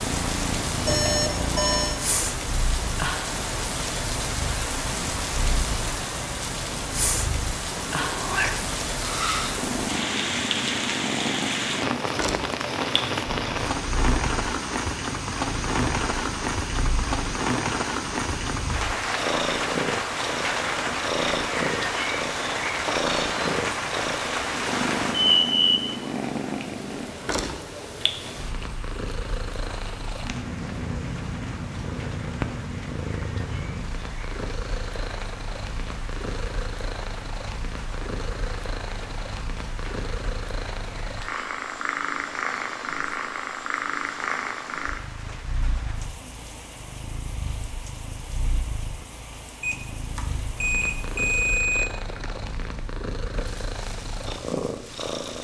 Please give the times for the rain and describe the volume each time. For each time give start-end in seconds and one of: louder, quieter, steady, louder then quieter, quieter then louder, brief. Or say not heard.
0.0-55.4 quieter.